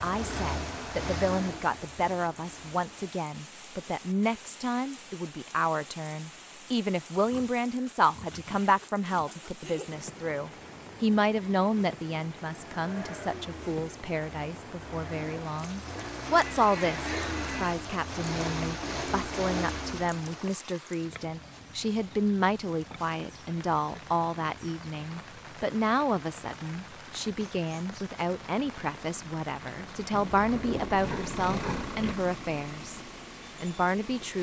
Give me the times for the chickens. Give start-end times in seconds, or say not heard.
not heard.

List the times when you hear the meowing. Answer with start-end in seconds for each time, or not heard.
not heard.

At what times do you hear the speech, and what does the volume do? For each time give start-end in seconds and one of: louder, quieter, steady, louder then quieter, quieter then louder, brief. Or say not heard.
0.0-33.0 steady
33.6-34.3 brief.